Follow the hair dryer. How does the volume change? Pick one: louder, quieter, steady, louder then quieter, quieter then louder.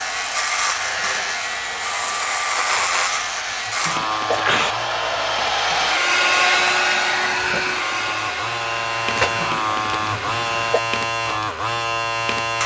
louder then quieter.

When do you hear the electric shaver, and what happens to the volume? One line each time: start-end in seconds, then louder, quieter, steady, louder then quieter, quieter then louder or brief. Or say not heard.
0.0-12.6 quieter then louder.